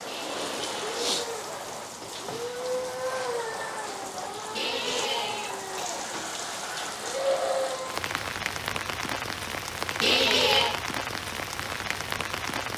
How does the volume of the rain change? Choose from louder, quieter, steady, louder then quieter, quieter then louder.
steady.